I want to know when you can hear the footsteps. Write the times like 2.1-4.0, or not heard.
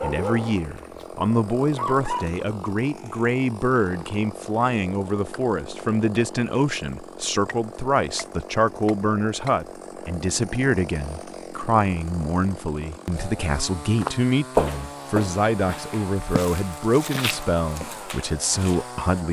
13.9-19.1.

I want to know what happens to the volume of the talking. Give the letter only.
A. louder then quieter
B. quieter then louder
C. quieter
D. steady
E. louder
D.